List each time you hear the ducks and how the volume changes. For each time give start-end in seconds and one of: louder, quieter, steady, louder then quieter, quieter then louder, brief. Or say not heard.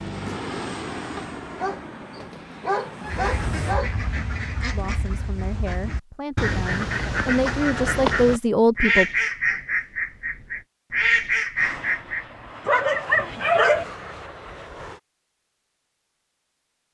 3.0-12.2 louder.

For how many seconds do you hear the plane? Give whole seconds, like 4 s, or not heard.
7 s.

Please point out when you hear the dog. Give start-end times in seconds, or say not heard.
1.1-4.0, 12.7-13.8.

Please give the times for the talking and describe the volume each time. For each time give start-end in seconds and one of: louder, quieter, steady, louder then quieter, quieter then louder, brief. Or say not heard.
4.7-9.1 louder.